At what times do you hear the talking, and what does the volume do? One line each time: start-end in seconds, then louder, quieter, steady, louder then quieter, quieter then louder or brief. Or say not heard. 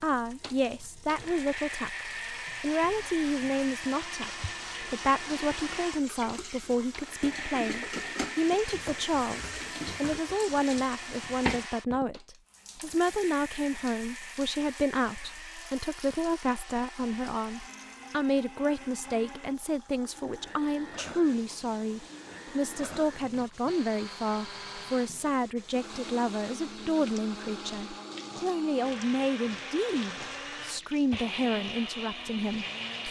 0.0-33.0 steady.